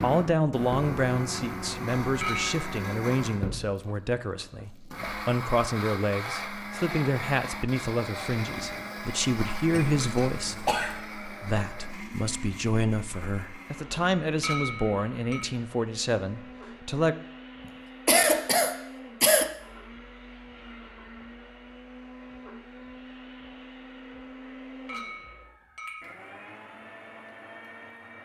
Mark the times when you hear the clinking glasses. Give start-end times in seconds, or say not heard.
2.2-2.6, 14.4-15.4, 24.9-26.1.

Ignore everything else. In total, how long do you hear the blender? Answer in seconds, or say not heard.
28 s.